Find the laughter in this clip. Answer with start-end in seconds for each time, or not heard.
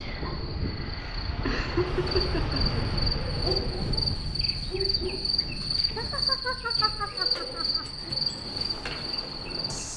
1.4-2.8, 6.0-8.2.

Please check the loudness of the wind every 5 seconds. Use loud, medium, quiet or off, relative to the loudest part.
loud, medium.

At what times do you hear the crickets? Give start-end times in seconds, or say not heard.
0.0-9.9.